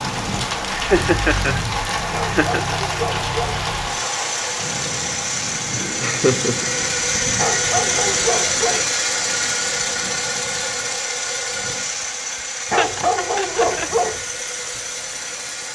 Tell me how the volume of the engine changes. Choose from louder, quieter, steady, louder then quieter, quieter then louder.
louder then quieter.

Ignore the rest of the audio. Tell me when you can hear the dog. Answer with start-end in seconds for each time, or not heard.
2.1-3.6, 7.3-8.8, 12.7-14.2.